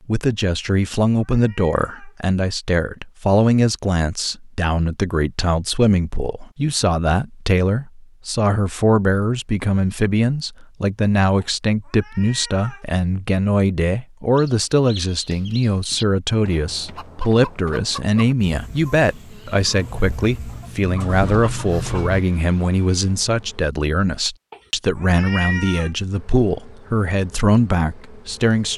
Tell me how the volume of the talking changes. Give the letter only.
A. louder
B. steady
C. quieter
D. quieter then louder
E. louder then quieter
B.